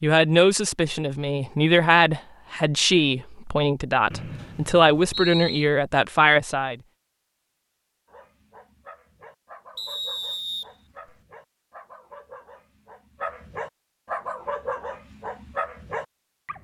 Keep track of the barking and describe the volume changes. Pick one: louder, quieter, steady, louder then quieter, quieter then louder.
louder.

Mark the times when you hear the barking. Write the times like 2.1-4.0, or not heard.
8.1-16.6.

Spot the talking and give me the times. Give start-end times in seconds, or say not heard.
0.0-6.8.